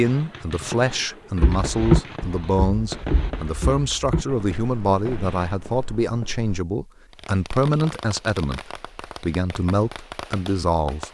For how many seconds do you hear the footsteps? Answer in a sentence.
You can hear the footsteps for 5 seconds altogether.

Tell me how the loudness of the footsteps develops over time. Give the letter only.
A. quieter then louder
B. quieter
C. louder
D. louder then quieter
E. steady
B.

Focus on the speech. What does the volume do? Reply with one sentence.
The volume of the speech stays about the same.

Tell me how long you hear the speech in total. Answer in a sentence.
You can hear the speech for 11 seconds altogether.